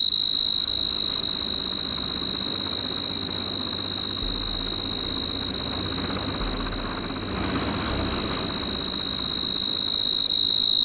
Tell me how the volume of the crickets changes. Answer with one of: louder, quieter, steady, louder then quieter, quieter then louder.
quieter then louder.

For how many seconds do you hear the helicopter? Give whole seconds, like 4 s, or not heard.
11 s.